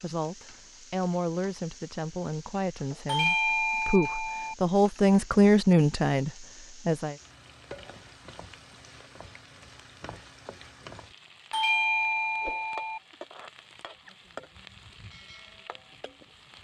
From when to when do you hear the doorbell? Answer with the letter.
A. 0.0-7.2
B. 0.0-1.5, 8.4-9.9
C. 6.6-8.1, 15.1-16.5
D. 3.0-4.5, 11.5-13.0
D.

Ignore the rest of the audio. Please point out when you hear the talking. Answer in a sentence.
The talking can be heard from 0.0 to 7.2 s.